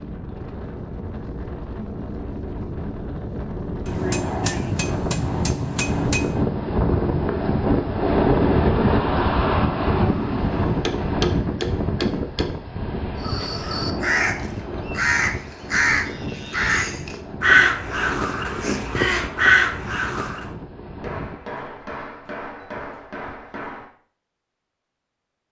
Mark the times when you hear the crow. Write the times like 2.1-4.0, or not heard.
13.2-20.4.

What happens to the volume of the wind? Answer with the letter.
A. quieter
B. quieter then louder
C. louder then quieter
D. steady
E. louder
C.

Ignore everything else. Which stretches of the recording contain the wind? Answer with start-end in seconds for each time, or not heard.
0.0-21.4.